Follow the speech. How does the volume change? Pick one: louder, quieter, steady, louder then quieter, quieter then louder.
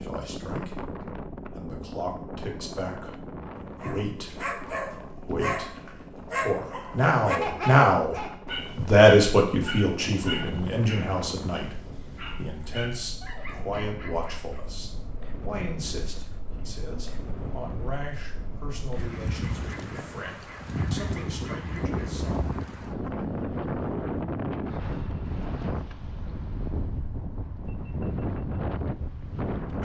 louder then quieter.